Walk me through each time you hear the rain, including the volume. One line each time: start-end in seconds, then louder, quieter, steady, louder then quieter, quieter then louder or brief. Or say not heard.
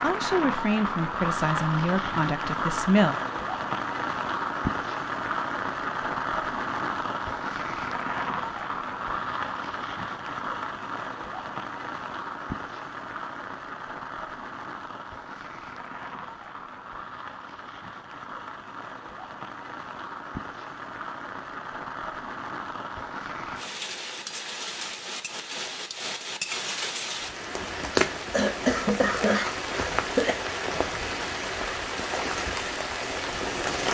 0.0-33.8 quieter then louder.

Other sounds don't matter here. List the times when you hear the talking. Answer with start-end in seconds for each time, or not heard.
0.0-3.1.